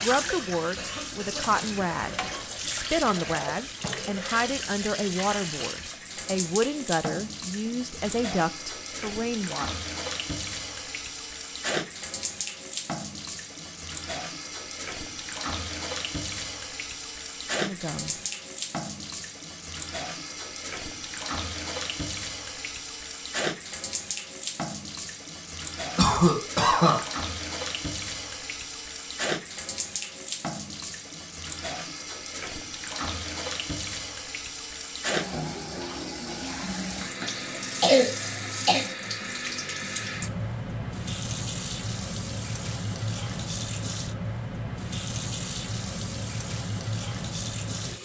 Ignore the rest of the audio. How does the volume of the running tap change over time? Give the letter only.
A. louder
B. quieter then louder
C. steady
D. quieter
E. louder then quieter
C.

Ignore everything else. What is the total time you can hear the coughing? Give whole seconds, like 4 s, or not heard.
5 s.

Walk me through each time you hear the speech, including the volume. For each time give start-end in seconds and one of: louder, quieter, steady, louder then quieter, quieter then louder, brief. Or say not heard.
0.0-9.8 steady
17.6-18.2 brief.